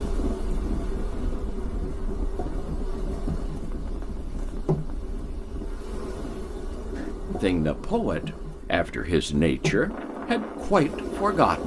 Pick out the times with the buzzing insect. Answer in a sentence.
The buzzing insect can be heard from 0.0 to 11.6 s.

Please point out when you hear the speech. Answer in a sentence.
The speech can be heard from 7.3 to 11.6 s.